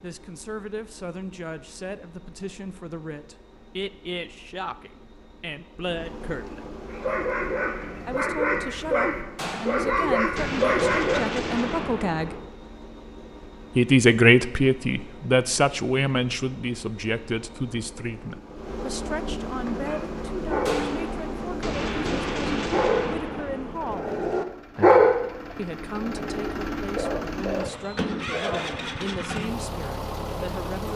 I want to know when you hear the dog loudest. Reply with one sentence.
The volume of the dog peaks at 25 seconds.